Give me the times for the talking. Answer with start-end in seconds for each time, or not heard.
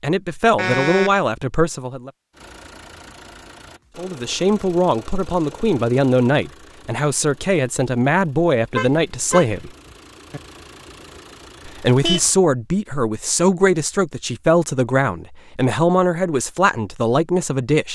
0.0-2.1, 4.0-9.7, 11.7-17.8.